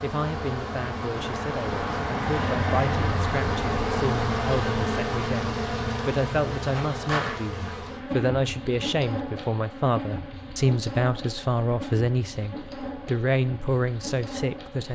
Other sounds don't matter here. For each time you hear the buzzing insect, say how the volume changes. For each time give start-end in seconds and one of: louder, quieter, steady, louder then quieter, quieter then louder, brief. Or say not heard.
0.0-14.9 quieter.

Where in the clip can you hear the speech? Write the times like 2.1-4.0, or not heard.
0.0-14.9.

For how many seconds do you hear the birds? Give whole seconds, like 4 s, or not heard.
not heard.